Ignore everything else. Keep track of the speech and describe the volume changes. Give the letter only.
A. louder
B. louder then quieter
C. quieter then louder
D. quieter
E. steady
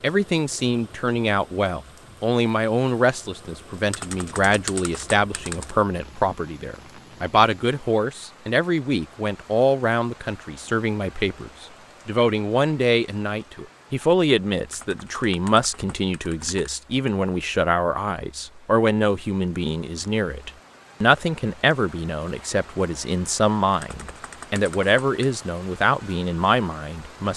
E.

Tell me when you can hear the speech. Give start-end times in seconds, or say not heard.
0.0-27.3.